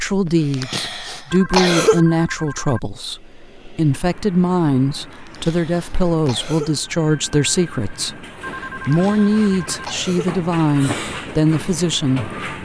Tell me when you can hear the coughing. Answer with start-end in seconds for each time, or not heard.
0.2-2.0, 5.2-6.8, 8.8-10.3.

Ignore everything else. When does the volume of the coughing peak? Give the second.
2 s.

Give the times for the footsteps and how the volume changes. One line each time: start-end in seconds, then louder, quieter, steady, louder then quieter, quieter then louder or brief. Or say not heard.
not heard.